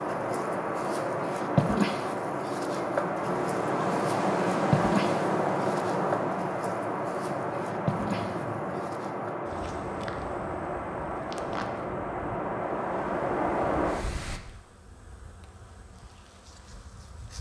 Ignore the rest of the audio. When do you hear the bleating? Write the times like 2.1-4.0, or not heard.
not heard.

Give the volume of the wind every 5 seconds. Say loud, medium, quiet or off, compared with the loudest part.
loud, loud, loud, off.